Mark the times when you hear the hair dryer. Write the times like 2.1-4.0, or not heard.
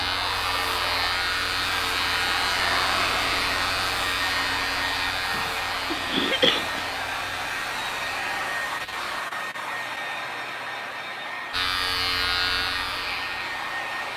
0.0-14.1.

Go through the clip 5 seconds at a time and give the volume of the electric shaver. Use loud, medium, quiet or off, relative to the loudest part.
loud, medium, loud.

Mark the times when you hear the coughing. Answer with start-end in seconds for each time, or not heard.
5.3-6.9.